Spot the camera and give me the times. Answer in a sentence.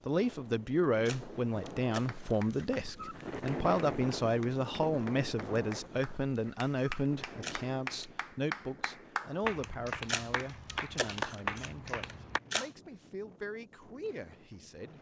You can hear the camera from 1.1 to 2.6 s, from 7.4 to 8.1 s and from 10.1 to 12.7 s.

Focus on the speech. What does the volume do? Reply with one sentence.
The loudness of the speech goes down.